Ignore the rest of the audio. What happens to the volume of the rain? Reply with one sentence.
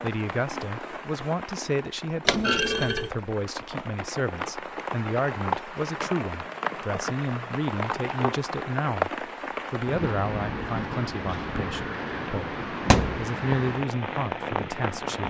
The loudness of the rain goes up.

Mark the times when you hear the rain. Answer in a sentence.
The rain can be heard from 0.0 to 15.2 s.